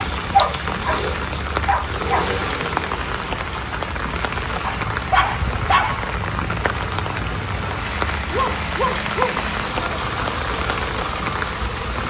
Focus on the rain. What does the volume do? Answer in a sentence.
The volume of the rain stays about the same.